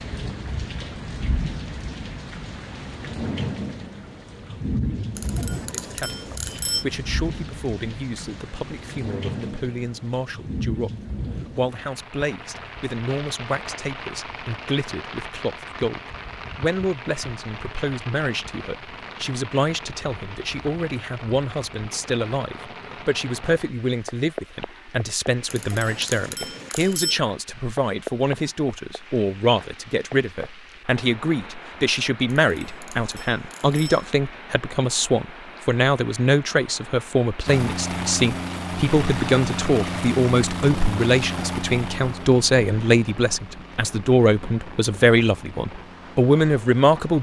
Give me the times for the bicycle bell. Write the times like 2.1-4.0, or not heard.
5.2-6.8, 25.5-27.2, 32.3-34.0.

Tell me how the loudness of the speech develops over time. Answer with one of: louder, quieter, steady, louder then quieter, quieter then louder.
louder.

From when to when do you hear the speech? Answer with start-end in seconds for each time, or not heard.
5.8-10.9, 11.5-47.1.